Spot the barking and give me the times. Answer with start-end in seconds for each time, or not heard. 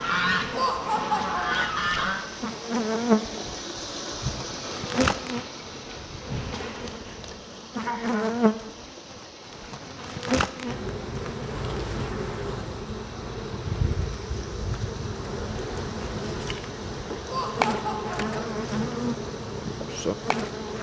not heard.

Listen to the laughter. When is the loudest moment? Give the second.
1 s.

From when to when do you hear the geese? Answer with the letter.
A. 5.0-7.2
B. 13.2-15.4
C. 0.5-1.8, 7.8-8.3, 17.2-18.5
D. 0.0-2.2
D.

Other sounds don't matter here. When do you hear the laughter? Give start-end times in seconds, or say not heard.
0.5-1.8, 7.8-8.3, 17.2-18.5.